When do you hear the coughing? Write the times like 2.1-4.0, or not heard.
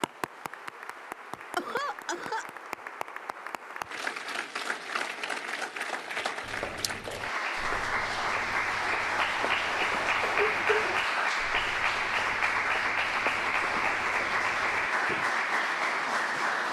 1.6-2.5, 10.2-11.0.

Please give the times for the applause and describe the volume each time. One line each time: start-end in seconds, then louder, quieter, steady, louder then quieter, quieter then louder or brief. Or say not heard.
0.0-16.6 louder.